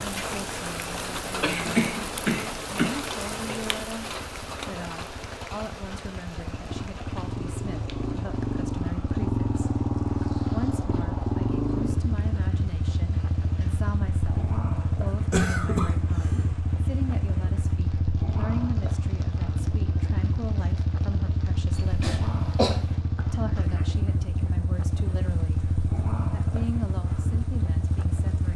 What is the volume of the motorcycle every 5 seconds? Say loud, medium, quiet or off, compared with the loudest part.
quiet, loud, loud, loud, loud, loud.